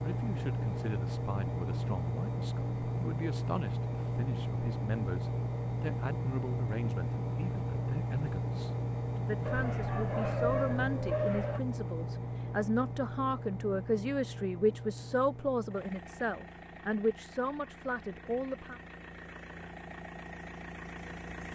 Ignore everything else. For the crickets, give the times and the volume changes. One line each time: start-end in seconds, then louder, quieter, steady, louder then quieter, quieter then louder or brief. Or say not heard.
not heard.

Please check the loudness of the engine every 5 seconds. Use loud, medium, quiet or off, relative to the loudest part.
loud, loud, loud, quiet, medium.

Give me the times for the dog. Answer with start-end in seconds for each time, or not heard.
9.4-11.6.